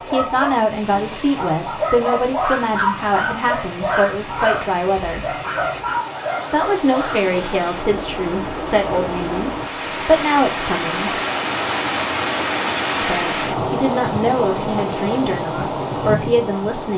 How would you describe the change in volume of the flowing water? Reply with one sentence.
The volume of the flowing water goes up.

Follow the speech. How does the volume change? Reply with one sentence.
The loudness of the speech stays about the same.